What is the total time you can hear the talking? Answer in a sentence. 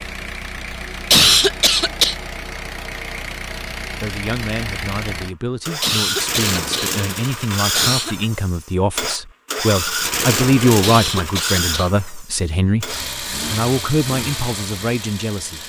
The talking can be heard for 12 seconds in total.